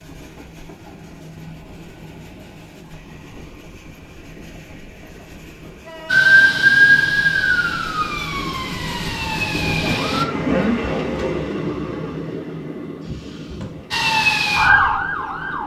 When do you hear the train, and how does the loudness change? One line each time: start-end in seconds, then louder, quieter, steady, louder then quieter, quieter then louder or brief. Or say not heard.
0.0-15.6 louder then quieter.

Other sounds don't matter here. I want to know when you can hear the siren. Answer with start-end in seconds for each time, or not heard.
6.1-10.2, 13.9-15.6.